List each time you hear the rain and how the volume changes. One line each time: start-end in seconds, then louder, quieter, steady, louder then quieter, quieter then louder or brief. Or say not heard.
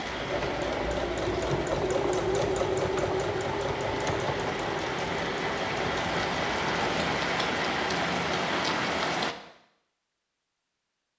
0.0-9.3 louder.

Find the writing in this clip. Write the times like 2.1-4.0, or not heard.
not heard.